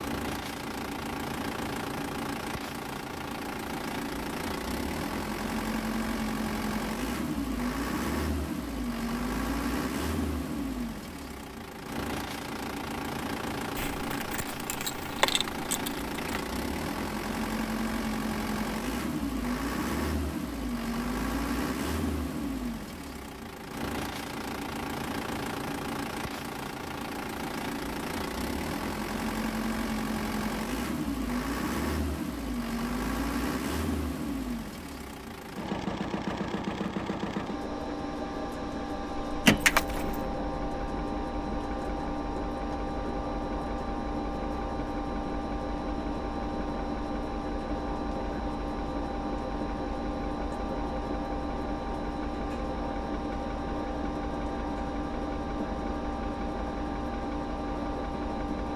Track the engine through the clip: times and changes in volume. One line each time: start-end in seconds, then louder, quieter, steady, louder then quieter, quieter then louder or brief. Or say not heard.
0.0-58.7 steady.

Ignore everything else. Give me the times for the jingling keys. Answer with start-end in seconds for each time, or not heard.
13.8-16.4, 39.5-40.3.